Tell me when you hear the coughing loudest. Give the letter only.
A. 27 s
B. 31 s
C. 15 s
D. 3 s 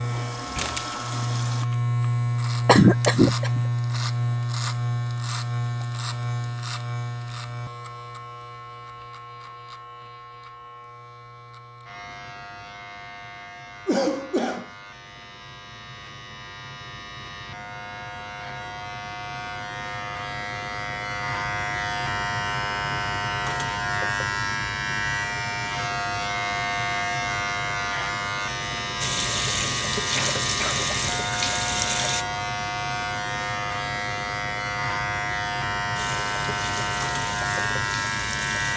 D.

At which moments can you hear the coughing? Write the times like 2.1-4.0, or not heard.
2.6-3.6, 13.8-14.7, 30.1-30.9.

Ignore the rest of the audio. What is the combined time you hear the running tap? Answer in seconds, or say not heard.
8 s.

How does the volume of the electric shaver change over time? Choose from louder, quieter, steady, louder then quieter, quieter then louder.
quieter then louder.